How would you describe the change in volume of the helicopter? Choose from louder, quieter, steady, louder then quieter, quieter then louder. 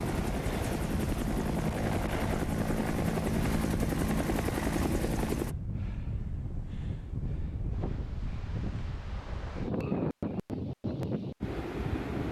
steady.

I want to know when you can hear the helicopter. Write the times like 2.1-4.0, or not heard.
0.0-5.5.